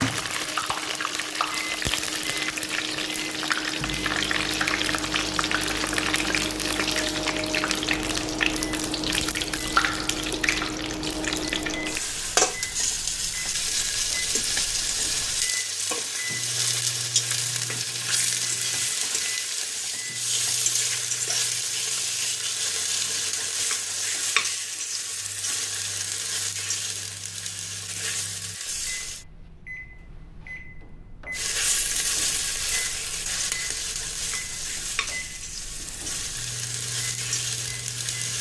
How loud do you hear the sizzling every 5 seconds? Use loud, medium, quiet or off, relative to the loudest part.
loud, loud, loud, loud, loud, medium, loud, medium.